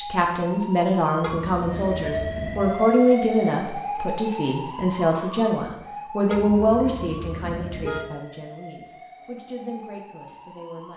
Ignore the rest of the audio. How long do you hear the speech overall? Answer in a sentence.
The speech can be heard for 11 seconds in total.